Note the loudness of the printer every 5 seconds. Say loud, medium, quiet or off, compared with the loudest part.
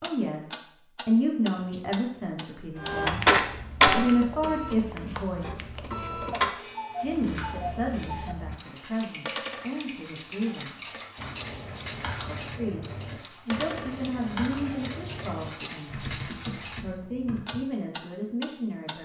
loud, medium, off, off.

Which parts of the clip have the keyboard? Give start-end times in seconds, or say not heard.
7.0-17.6.